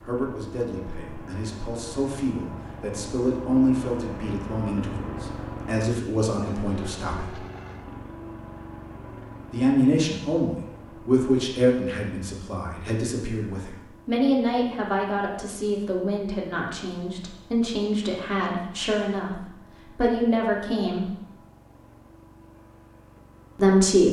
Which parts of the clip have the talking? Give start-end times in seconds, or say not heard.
0.0-7.3, 9.5-21.1, 23.6-24.0.